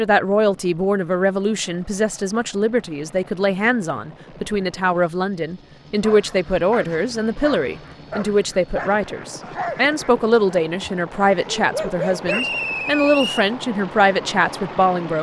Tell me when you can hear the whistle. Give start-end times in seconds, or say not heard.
12.2-13.4.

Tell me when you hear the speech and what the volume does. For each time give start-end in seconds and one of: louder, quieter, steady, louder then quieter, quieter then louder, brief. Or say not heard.
0.0-15.1 steady.